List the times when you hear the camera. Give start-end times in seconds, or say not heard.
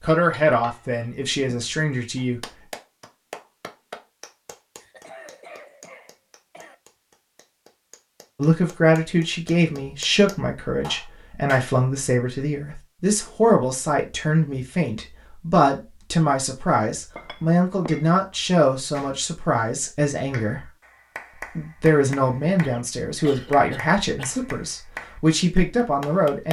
not heard.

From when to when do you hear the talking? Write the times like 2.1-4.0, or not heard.
0.0-2.5, 8.3-20.7, 21.4-26.4.